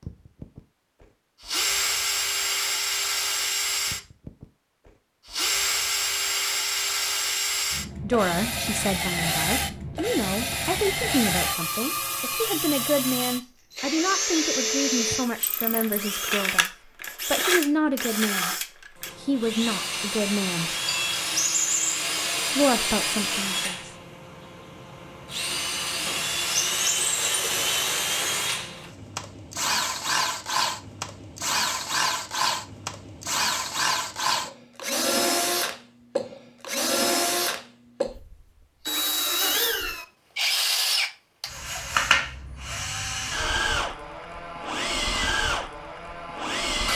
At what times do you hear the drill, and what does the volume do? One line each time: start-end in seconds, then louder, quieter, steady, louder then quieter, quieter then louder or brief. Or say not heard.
0.0-46.9 steady.